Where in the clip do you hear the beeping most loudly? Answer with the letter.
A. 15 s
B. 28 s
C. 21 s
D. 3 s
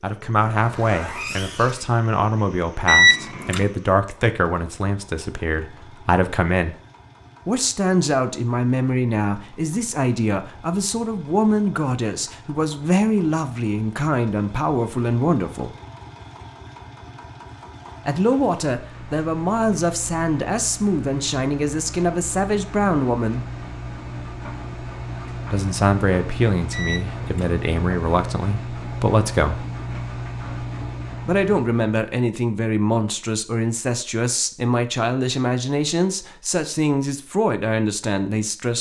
D.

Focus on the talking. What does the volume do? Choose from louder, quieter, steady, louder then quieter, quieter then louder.
steady.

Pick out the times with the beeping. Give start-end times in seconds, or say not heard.
2.9-3.6, 26.7-27.5.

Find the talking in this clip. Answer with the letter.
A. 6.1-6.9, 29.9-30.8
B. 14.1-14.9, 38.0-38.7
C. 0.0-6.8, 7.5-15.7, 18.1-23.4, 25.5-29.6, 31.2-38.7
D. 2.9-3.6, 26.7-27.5
C.